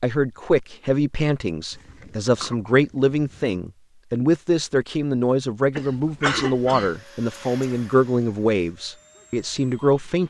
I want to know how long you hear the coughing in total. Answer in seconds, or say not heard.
3 s.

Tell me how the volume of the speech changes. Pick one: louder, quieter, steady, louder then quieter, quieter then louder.
steady.